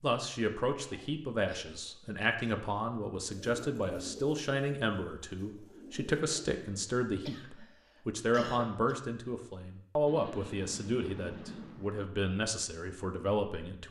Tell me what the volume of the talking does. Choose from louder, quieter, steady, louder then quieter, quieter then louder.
steady.